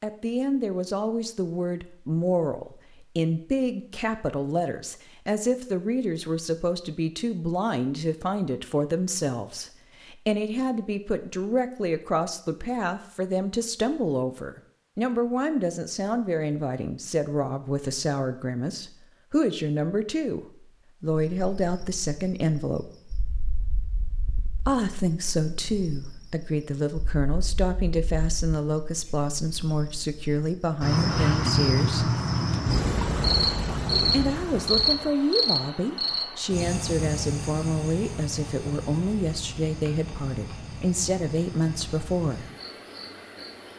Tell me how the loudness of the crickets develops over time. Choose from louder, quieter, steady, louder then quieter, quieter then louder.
louder then quieter.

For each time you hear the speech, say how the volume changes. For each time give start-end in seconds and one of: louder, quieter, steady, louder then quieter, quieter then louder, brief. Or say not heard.
0.0-22.9 steady
24.6-32.2 steady
34.1-42.5 steady.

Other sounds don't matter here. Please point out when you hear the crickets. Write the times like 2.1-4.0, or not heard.
21.1-43.7.